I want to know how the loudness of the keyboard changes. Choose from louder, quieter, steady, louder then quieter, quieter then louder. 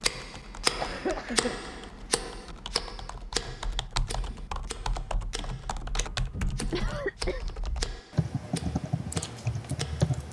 louder.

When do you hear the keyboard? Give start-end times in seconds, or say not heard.
0.0-10.2.